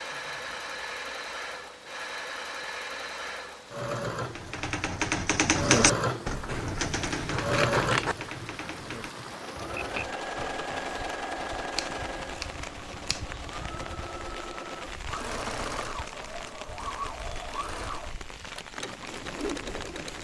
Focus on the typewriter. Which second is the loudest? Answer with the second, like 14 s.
6 s.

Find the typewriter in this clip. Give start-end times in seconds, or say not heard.
4.2-10.7.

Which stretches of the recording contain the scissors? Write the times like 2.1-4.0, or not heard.
6.5-8.2, 11.7-13.6.